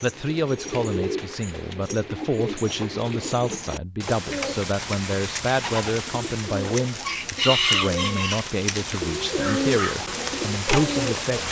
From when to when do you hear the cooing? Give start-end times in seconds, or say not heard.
0.0-11.4.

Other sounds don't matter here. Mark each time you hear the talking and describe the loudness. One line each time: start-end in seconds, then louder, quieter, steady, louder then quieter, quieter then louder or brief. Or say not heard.
0.0-11.4 steady.